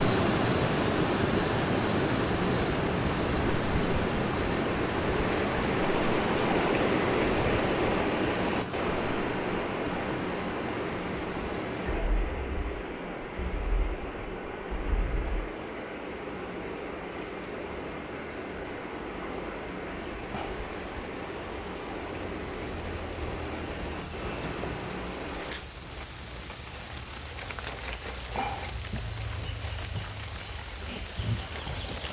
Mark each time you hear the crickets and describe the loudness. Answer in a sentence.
You can hear the crickets from 0.0 to 32.0 s, getting quieter then louder.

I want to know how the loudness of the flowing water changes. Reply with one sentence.
The loudness of the flowing water goes down.